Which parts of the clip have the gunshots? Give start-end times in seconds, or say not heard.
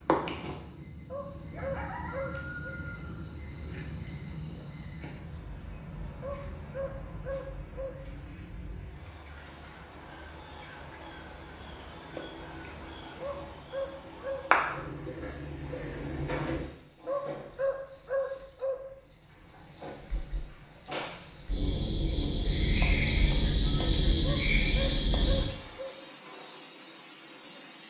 not heard.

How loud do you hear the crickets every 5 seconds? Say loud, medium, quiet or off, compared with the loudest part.
medium, quiet, medium, medium, loud, loud.